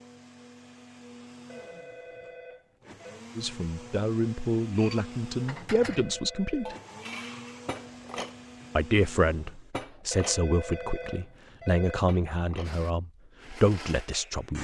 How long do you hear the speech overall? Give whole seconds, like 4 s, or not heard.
9 s.